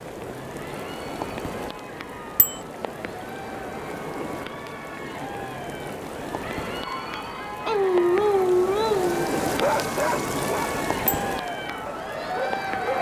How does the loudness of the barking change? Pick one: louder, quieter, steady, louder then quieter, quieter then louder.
quieter.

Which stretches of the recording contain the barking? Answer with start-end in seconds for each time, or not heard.
6.8-12.9.